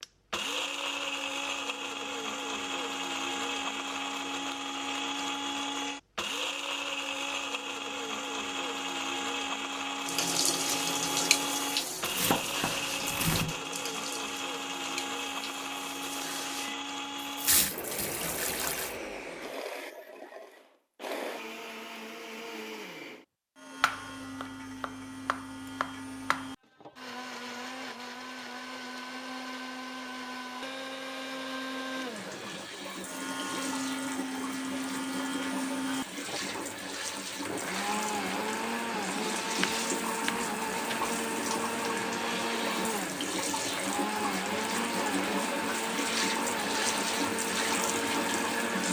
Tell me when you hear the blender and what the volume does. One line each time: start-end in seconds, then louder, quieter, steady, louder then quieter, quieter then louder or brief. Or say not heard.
0.0-48.8 quieter then louder.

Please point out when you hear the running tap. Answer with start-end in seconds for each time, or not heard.
10.1-18.9, 31.9-48.8.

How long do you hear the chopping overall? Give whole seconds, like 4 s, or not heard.
6 s.